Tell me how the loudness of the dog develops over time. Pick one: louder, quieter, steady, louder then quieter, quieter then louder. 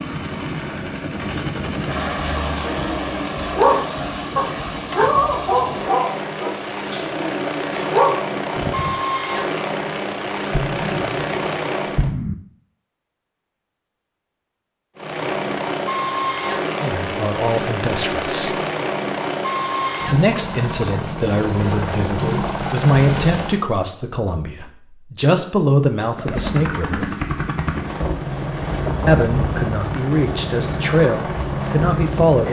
quieter then louder.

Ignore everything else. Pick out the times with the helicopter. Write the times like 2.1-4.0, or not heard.
0.0-12.1, 14.9-23.6, 26.1-32.4.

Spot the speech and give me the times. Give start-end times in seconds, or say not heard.
16.8-18.6, 20.1-27.1, 29.1-32.4.